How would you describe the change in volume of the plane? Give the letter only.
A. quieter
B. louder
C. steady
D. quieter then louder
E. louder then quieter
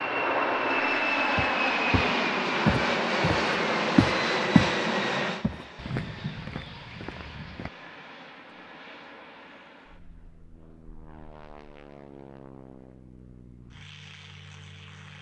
A.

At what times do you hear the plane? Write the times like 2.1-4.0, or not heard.
0.0-15.1.